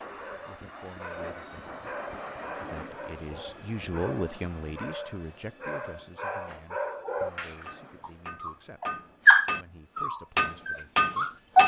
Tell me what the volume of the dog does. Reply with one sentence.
The loudness of the dog goes up.